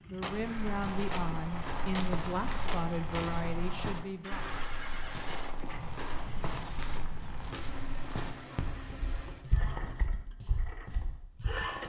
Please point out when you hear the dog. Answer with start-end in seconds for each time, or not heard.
not heard.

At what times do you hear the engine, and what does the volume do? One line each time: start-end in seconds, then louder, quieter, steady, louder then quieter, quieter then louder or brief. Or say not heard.
0.0-11.8 steady.